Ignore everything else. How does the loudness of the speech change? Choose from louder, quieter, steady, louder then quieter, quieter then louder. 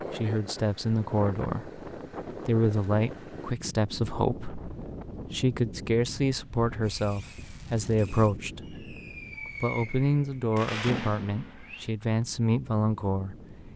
steady.